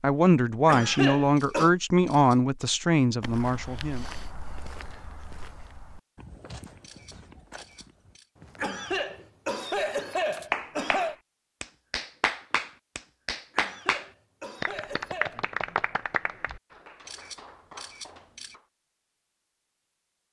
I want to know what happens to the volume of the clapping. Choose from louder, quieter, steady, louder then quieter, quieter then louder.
quieter.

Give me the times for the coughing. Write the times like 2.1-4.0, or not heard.
0.7-1.7, 8.6-11.2, 13.5-15.4.